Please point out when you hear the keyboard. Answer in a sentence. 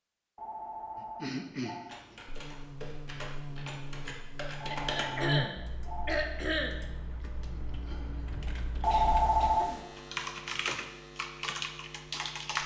You can hear the keyboard from 1.9 to 12.6 s.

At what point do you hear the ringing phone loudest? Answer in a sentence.
The volume of the ringing phone peaks at 9 seconds.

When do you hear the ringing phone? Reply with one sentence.
The ringing phone can be heard from 0.3 to 1.9 s, from 4.6 to 6.2 s and from 8.8 to 9.8 s.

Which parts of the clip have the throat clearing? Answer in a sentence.
The throat clearing can be heard from 0.9 to 2.1 s, from 4.7 to 6.8 s and from 8.9 to 9.9 s.